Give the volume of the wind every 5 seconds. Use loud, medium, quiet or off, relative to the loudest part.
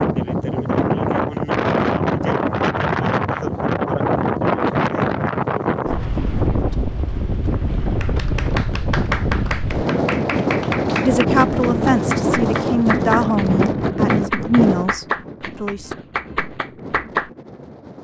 loud, loud, loud, quiet.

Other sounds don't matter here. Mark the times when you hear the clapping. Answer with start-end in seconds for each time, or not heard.
7.8-17.3.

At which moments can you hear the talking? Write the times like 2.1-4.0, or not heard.
11.0-15.9.